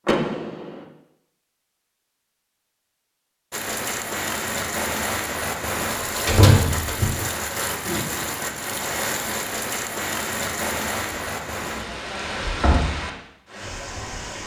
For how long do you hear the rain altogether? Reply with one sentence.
You can hear the rain for 11 seconds altogether.